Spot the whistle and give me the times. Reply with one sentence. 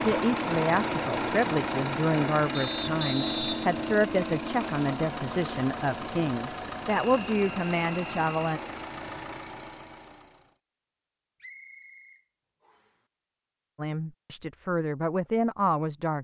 You can hear the whistle from 2.5 to 3.8 s, from 7.0 to 8.4 s and from 11.4 to 12.9 s.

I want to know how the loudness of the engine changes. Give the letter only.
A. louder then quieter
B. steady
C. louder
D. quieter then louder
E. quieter
E.